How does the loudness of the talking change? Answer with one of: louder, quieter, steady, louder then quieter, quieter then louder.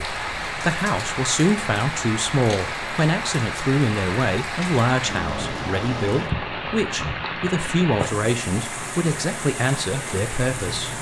steady.